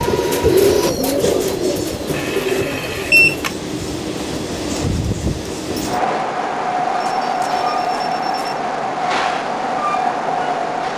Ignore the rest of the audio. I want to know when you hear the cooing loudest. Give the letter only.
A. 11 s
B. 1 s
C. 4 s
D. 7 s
B.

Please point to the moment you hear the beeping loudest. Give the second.
3 s.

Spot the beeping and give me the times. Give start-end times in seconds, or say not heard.
2.1-3.5, 7.0-8.6.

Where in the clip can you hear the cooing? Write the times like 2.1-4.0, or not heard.
0.0-3.5.